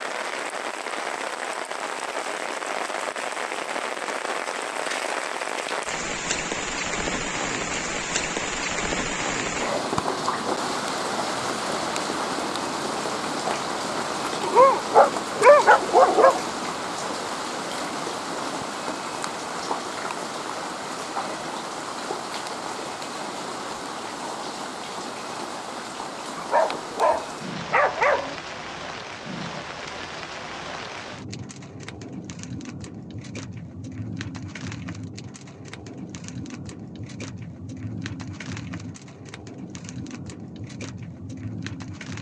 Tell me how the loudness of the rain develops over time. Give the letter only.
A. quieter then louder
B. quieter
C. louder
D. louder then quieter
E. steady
B.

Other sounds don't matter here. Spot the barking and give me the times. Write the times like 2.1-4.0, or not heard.
14.4-16.4, 26.4-28.4.